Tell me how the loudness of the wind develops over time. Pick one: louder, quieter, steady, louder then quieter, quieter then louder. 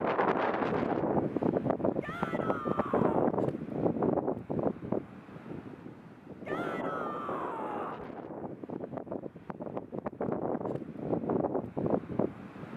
quieter then louder.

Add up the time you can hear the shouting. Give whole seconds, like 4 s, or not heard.
3 s.